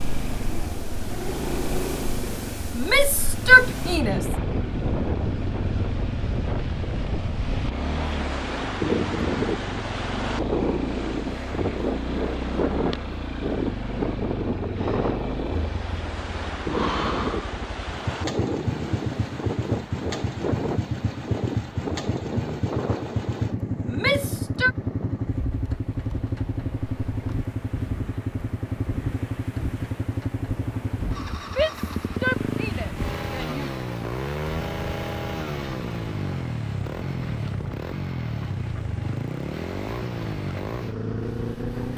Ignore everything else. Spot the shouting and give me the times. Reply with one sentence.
The shouting can be heard from 2.8 to 4.2 s, from 23.9 to 24.8 s and from 31.4 to 34.0 s.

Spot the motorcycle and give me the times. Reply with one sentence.
You can hear the motorcycle from 0.0 to 41.9 s.